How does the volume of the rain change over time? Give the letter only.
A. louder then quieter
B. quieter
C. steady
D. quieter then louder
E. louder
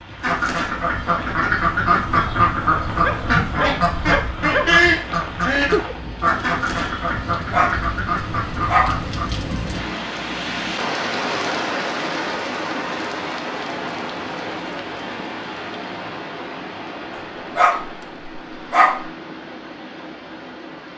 A.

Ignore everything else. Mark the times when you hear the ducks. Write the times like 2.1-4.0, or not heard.
0.2-9.4.